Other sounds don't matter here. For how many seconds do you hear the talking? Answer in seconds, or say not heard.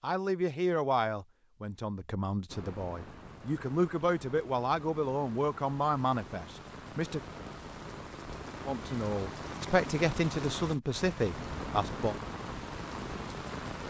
11 s.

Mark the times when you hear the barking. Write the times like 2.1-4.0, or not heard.
not heard.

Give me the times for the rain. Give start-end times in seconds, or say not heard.
2.5-13.8.